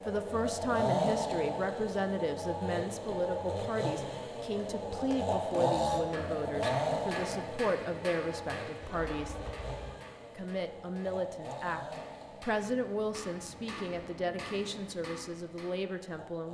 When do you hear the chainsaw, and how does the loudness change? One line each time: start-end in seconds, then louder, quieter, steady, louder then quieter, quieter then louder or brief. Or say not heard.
0.0-16.5 quieter.